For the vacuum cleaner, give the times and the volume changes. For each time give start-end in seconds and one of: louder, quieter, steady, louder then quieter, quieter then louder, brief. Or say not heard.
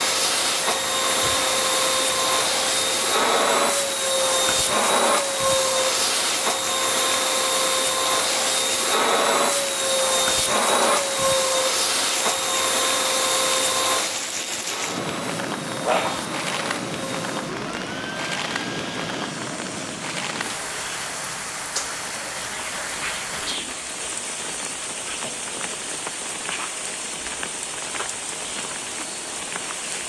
0.0-30.0 quieter.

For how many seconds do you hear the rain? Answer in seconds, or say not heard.
30 s.